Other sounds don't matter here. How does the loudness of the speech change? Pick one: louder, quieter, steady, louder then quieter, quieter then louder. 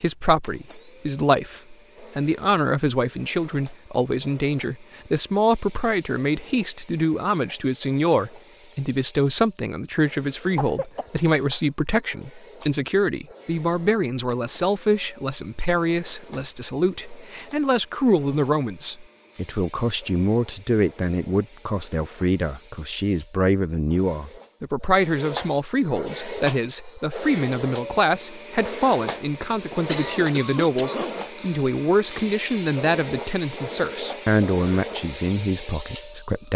steady.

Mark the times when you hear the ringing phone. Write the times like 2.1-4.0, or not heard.
not heard.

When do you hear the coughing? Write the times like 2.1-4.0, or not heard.
10.4-11.1, 29.7-31.6.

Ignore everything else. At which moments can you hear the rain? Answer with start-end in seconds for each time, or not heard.
not heard.